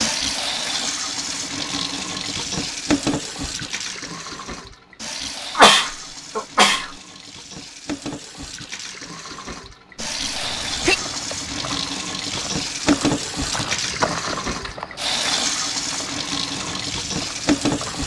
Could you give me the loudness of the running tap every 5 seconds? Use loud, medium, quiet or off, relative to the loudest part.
loud, medium, loud, loud.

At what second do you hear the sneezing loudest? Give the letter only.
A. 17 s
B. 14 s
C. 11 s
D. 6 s
D.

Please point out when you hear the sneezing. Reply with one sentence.
You can hear the sneezing from 5.5 to 6.9 s and from 10.2 to 11.1 s.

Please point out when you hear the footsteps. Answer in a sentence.
The footsteps can be heard from 10.4 to 18.0 s.